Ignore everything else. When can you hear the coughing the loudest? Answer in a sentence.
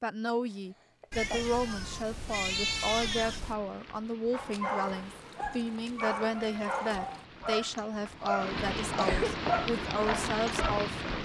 The loudest moment of the coughing is at 9 seconds.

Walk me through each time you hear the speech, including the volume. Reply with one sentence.
You can hear the speech from 0.0 to 11.2 s, at a steady volume.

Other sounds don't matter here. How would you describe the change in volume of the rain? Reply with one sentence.
The volume of the rain goes up.